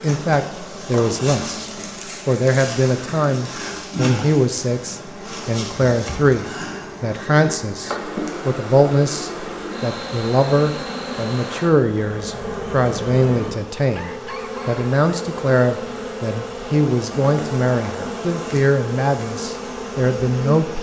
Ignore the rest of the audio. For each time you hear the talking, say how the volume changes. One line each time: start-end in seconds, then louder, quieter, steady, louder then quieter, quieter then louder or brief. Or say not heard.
0.0-20.7 steady.